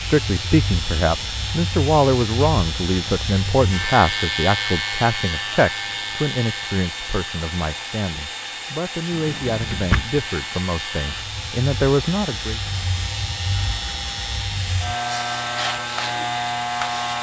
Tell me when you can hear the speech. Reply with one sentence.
You can hear the speech from 0.0 to 12.6 s.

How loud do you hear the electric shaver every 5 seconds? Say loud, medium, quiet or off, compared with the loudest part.
loud, medium, medium, loud.